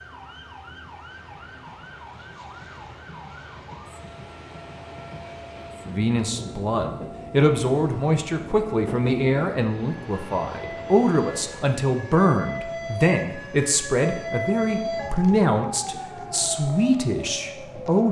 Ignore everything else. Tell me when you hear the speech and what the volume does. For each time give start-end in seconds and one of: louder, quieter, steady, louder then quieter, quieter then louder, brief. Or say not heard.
5.8-18.0 steady.